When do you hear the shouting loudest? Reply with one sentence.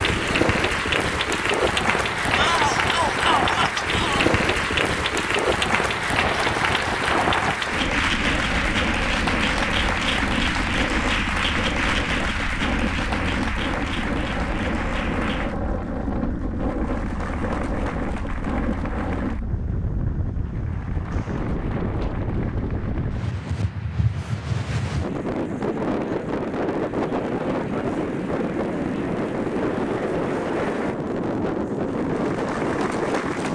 The loudest moment of the shouting is at 3 seconds.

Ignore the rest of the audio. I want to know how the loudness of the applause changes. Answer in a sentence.
The volume of the applause goes down, then up.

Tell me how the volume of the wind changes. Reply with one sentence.
The volume of the wind stays about the same.